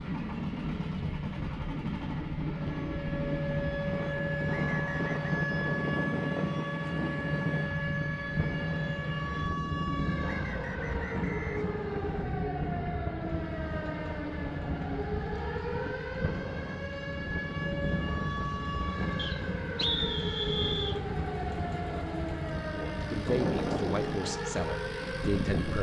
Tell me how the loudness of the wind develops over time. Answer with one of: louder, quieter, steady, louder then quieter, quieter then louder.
steady.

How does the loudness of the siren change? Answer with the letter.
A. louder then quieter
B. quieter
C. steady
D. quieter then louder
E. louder
C.